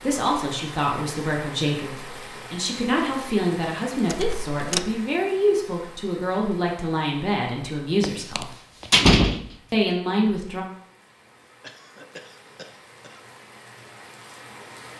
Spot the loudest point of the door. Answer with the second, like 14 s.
9 s.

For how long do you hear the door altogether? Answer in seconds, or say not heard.
3 s.